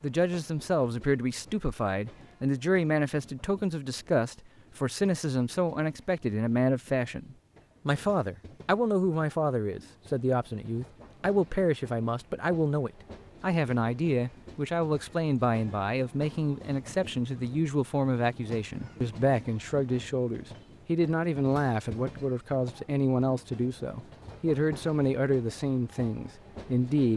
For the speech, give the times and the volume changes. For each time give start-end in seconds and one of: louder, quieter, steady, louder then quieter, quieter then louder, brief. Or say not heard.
0.0-27.1 steady.